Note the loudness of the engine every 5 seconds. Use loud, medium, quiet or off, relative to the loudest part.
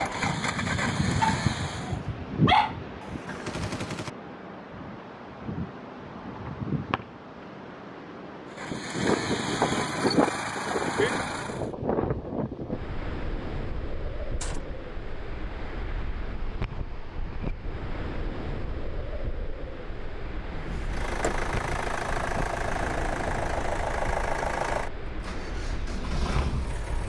loud, loud, loud, off, loud, medium.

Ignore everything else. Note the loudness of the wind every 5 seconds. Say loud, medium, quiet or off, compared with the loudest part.
loud, loud, loud, medium, medium, medium.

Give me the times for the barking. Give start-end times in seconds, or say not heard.
1.2-2.8.